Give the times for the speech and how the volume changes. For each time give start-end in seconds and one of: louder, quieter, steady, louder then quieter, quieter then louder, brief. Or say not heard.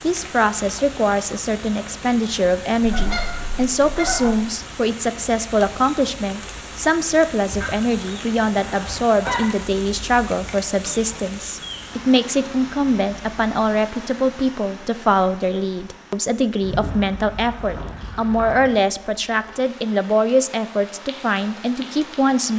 0.0-22.5 steady.